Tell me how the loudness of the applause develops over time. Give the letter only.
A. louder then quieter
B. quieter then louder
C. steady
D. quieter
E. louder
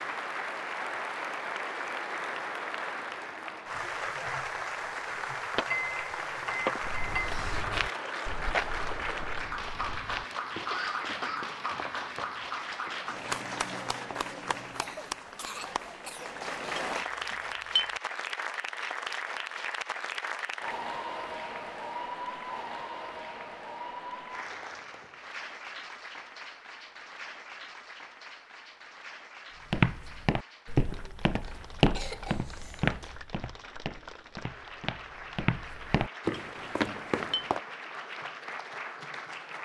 D.